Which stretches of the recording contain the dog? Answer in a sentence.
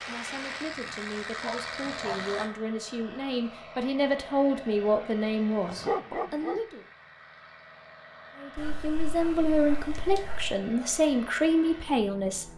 You can hear the dog from 0.8 to 2.2 s, from 5.7 to 6.6 s and from 8.6 to 10.6 s.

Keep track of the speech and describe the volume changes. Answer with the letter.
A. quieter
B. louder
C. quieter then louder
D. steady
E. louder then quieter
B.